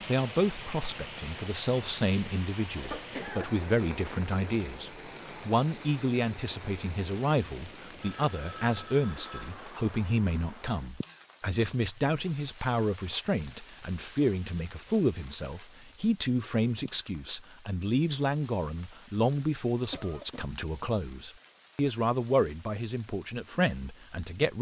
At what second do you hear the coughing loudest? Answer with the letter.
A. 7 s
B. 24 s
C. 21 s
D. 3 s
D.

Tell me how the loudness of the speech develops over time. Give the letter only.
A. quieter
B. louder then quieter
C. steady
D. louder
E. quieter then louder
C.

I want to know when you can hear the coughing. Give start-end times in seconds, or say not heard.
2.8-3.5, 19.9-20.4.